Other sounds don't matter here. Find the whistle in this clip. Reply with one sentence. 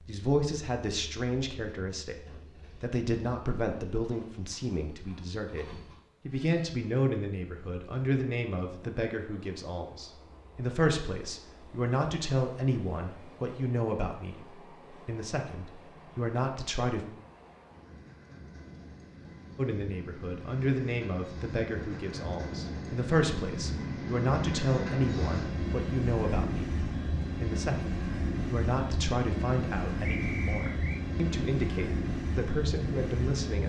You can hear the whistle from 30.0 to 31.1 s.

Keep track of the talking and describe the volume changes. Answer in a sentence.
The volume of the talking stays about the same.